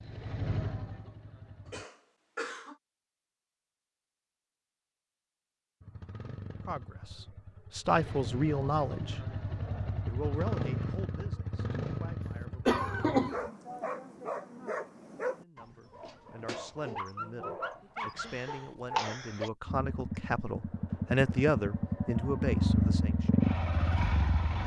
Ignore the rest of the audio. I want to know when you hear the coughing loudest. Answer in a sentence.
The volume of the coughing peaks at 13 seconds.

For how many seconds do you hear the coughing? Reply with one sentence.
You can hear the coughing for 4 seconds altogether.